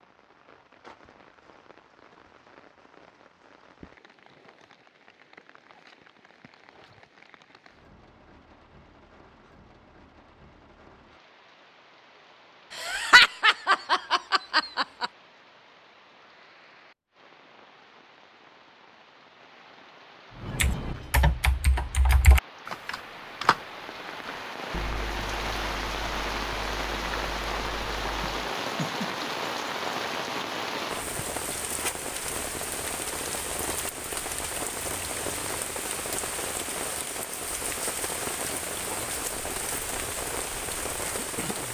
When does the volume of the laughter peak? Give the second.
13 s.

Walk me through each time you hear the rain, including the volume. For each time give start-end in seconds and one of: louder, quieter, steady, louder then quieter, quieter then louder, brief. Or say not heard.
0.0-41.6 louder.